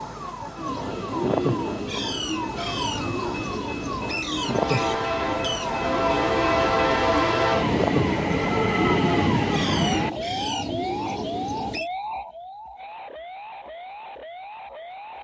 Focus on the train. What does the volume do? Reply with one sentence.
The loudness of the train goes up.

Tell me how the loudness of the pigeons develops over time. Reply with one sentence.
The volume of the pigeons stays about the same.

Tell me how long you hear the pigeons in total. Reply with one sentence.
You can hear the pigeons for 11 seconds altogether.